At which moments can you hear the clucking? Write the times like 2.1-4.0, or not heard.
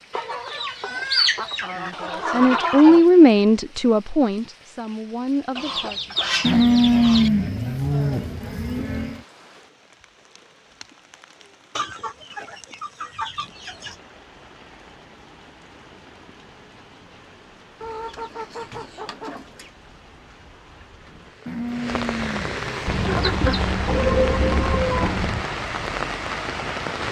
0.1-3.0, 5.5-7.3, 11.8-13.9, 17.8-19.7, 22.9-25.4.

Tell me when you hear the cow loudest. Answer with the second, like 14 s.
7 s.